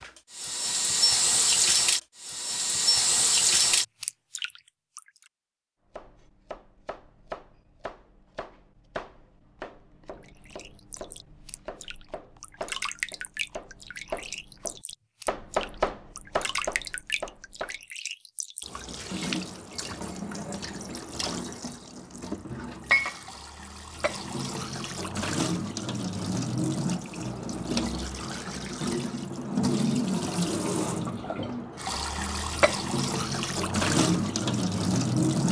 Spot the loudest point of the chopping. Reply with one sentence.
The loudest moment of the chopping is at 16 seconds.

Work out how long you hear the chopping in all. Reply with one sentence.
The chopping can be heard for 12 seconds in total.